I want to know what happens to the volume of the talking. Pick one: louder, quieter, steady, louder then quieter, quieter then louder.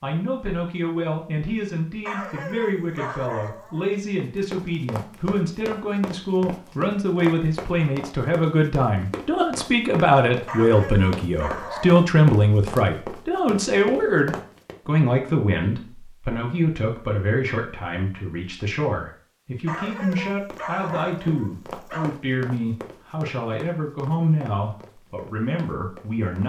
louder then quieter.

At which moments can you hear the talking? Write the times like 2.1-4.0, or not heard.
0.0-26.4.